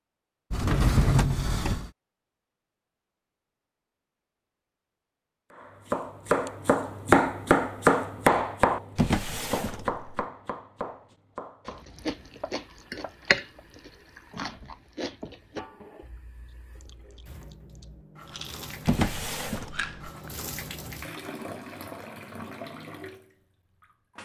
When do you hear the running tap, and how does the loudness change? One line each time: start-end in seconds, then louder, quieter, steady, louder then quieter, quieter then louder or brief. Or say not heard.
12.0-24.2 louder.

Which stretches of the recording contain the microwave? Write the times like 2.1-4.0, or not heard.
not heard.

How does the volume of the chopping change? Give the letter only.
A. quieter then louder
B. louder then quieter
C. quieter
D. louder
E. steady
C.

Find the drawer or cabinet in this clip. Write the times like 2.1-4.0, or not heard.
0.5-1.9, 8.9-10.1, 18.9-19.7.